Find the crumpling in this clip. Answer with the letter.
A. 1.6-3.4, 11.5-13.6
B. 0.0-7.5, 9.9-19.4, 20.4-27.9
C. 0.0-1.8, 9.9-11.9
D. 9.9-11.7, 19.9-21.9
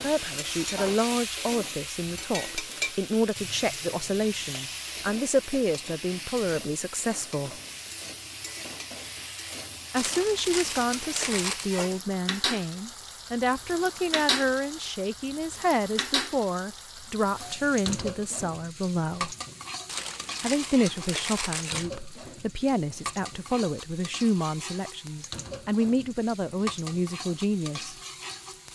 D.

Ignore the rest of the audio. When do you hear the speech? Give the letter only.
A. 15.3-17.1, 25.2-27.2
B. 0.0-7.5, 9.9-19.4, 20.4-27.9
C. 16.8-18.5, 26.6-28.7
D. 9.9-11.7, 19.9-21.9
B.